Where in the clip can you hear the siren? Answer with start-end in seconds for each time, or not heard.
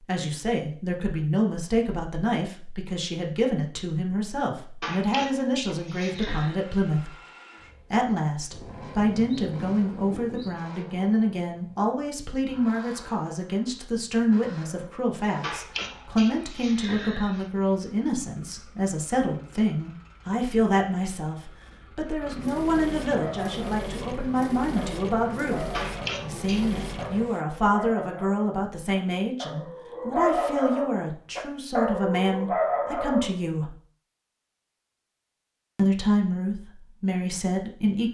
not heard.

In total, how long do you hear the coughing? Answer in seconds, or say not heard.
5 s.